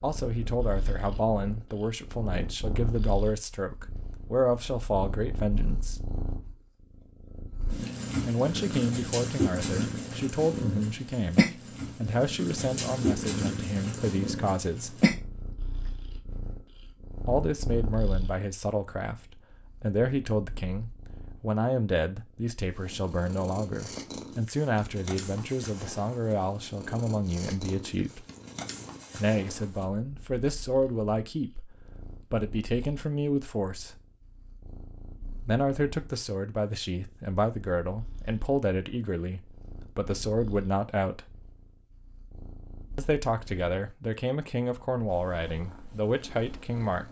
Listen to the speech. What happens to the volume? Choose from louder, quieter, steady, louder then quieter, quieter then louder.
steady.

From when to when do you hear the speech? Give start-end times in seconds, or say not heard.
0.0-6.1, 8.2-15.1, 17.2-28.2, 29.1-34.0, 35.5-41.2, 43.0-47.0.